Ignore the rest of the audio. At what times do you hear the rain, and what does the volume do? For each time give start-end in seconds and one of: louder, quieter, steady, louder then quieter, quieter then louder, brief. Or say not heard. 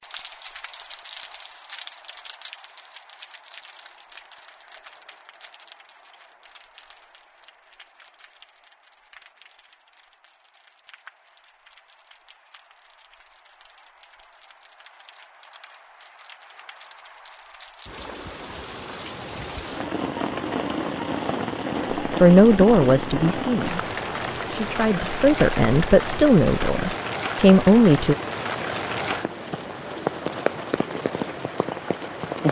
0.0-32.4 quieter then louder.